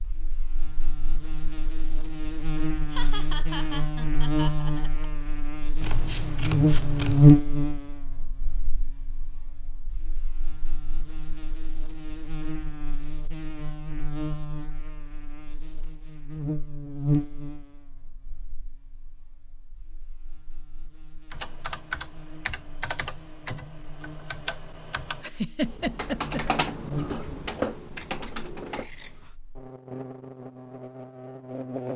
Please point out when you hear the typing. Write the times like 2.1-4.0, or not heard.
21.3-28.9.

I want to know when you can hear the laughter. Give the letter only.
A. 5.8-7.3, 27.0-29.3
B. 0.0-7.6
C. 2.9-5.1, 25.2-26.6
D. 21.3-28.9
C.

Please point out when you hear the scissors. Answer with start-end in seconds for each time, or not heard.
5.8-7.3, 27.0-29.3.